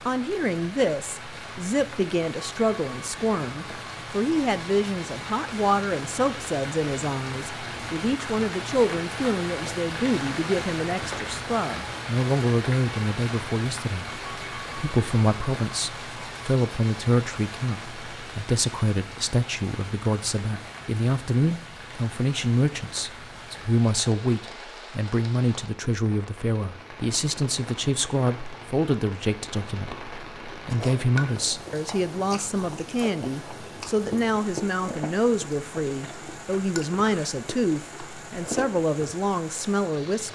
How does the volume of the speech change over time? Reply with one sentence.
The loudness of the speech stays about the same.